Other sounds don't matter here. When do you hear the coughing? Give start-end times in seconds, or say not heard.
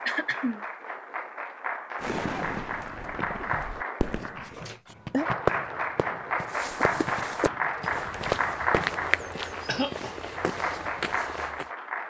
0.1-0.6, 4.2-5.3, 9.7-10.2.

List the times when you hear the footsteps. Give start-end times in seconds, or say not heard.
6.4-11.7.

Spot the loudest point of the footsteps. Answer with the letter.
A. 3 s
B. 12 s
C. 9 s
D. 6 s
C.